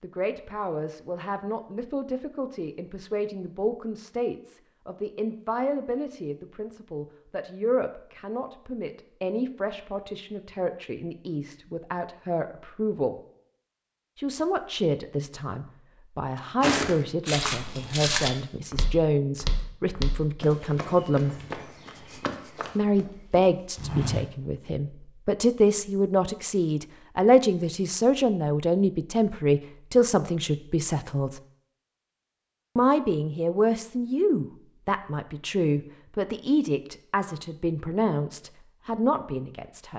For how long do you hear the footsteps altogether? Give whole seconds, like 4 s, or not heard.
8 s.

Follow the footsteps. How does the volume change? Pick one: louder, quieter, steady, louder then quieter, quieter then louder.
quieter.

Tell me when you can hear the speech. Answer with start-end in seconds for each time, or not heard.
0.0-13.2, 14.2-21.4, 22.8-31.4, 32.8-39.9.